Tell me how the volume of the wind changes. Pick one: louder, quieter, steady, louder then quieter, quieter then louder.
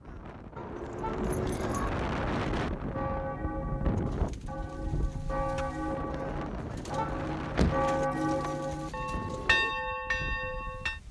quieter.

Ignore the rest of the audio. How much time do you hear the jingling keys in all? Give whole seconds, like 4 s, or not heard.
2 s.